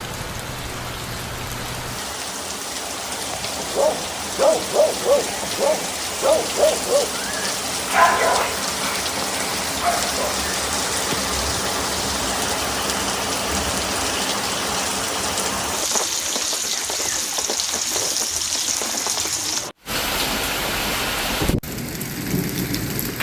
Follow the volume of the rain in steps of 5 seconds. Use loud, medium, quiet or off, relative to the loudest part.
medium, loud, loud, loud, loud.